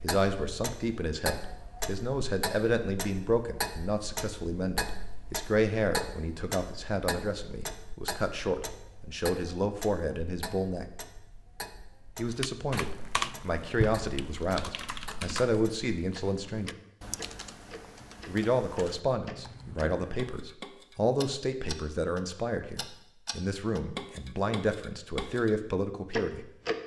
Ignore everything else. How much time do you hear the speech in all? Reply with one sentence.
You can hear the speech for 24 seconds altogether.